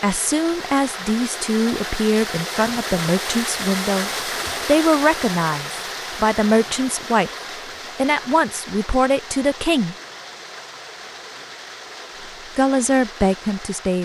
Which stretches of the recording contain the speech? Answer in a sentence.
You can hear the speech from 0.0 to 7.3 s, from 8.0 to 9.9 s and from 12.6 to 14.0 s.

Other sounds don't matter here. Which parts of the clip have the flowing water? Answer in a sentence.
You can hear the flowing water from 0.0 to 14.0 s.